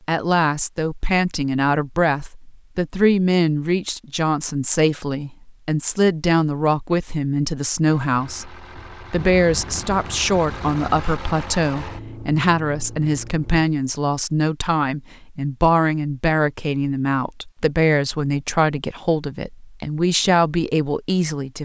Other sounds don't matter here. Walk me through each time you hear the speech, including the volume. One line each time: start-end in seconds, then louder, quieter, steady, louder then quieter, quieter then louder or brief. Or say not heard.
0.1-21.6 steady.